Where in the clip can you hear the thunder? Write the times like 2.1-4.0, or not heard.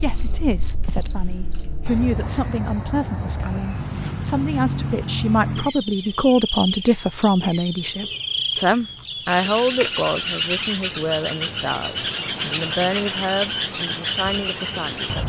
not heard.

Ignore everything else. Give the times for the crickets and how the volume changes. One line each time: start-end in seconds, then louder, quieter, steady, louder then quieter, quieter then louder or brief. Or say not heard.
0.0-15.2 louder.